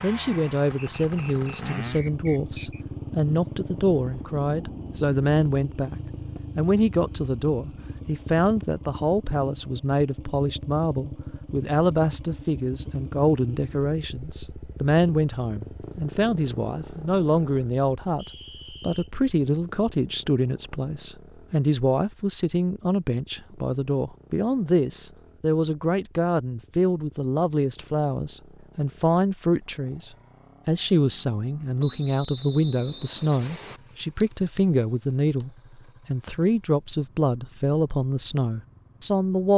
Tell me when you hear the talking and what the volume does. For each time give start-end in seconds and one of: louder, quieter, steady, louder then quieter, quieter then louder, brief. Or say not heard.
0.0-39.5 steady.